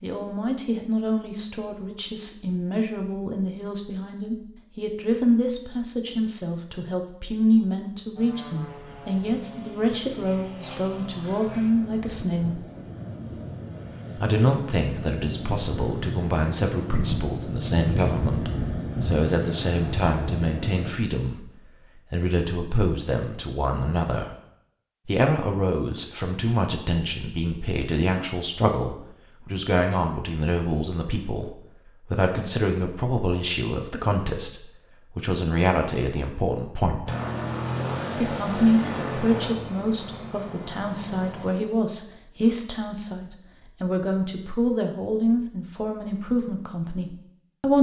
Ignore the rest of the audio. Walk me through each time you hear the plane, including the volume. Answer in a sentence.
The plane can be heard from 8.2 to 20.9 s, getting louder; and from 37.0 to 41.5 s, getting quieter.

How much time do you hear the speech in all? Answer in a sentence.
The speech can be heard for 44 seconds in total.